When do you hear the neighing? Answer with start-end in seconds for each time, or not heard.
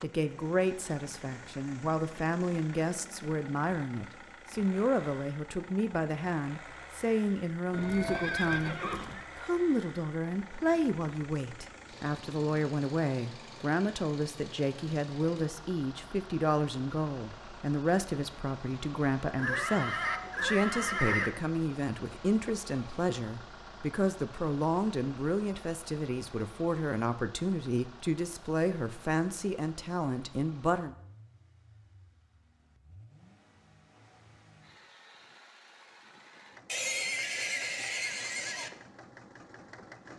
7.7-9.2, 19.4-21.3, 36.6-38.7.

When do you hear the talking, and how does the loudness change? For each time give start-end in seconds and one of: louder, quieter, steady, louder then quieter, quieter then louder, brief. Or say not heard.
0.0-30.9 steady.